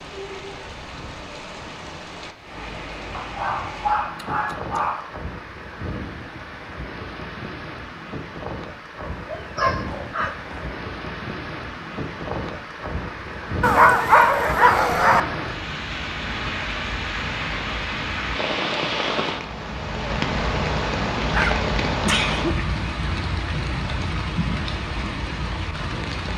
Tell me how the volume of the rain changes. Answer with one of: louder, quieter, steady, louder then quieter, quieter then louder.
louder.